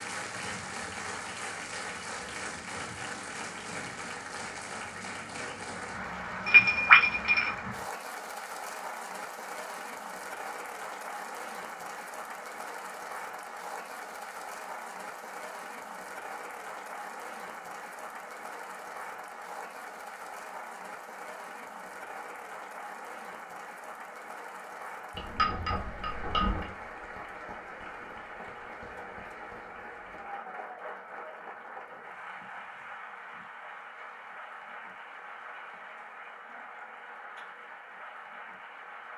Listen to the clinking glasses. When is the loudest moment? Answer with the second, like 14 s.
7 s.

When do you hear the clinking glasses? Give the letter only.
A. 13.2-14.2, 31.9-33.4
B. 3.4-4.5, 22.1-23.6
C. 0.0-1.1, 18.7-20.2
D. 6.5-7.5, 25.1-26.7
D.